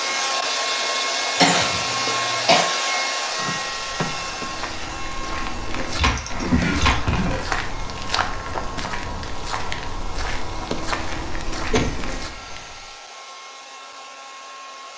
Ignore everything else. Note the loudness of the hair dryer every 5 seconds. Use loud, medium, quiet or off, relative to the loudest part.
loud, quiet, quiet.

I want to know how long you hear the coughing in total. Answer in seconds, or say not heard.
4 s.